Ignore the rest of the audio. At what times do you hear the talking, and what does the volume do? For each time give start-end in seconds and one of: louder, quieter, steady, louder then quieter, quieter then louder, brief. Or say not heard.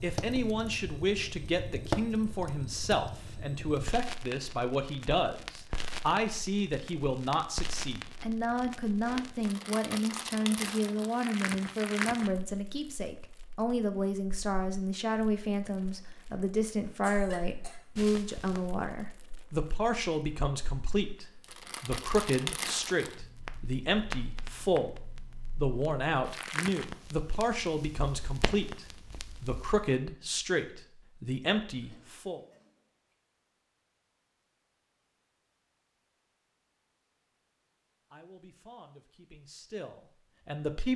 0.0-32.4 steady
38.1-40.9 brief.